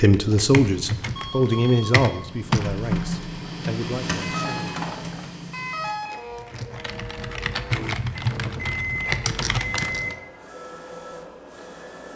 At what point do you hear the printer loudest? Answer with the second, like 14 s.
3 s.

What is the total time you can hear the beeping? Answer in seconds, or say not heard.
5 s.